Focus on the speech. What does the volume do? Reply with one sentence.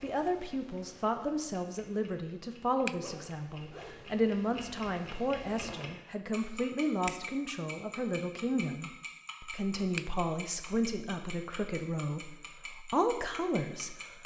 The loudness of the speech stays about the same.